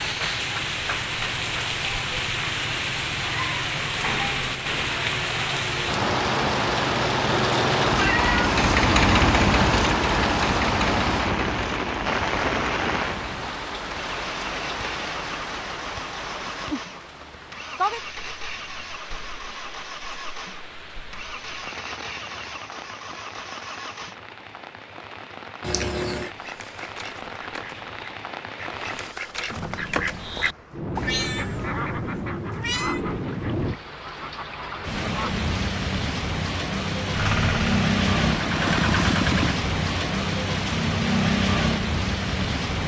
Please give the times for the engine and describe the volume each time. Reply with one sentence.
The engine can be heard from 0.0 to 24.2 s, getting louder then quieter; and briefly from 37.1 to 39.5 s.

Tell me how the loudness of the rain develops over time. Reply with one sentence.
The loudness of the rain goes down, then up.